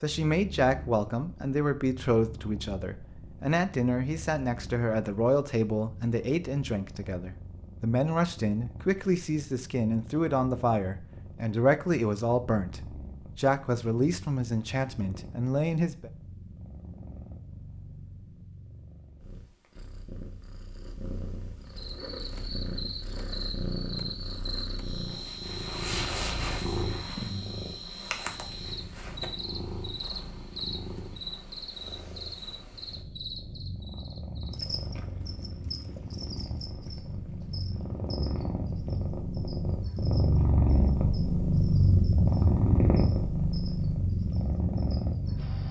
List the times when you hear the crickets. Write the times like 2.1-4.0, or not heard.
21.7-45.6.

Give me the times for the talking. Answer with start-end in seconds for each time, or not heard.
0.0-16.1.